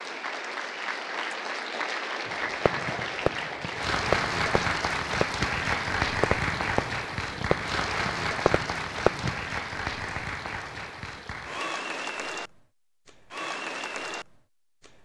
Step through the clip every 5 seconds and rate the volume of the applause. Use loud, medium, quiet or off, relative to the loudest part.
loud, loud, medium.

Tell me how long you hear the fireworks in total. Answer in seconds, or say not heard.
7 s.